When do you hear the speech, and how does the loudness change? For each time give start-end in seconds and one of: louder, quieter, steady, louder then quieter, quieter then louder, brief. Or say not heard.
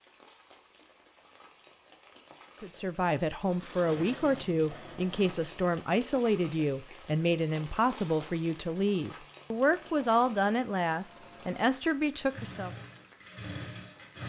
2.6-12.7 steady.